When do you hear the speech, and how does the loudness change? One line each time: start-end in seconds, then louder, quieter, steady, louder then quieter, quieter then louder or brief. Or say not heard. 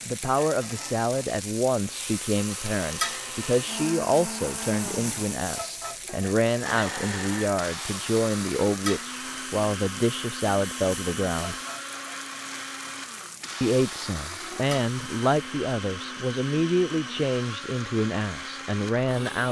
0.1-11.6 steady
13.6-19.4 steady.